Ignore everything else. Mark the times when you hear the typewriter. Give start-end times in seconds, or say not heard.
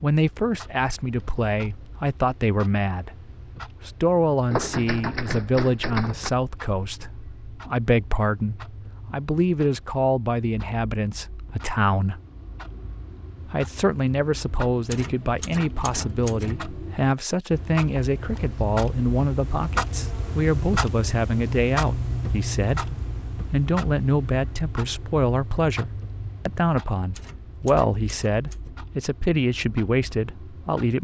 4.5-6.3, 14.9-16.6, 27.1-28.7.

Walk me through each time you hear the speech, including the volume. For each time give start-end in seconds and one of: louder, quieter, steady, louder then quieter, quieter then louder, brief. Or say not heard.
0.0-12.2 steady
13.4-30.9 steady.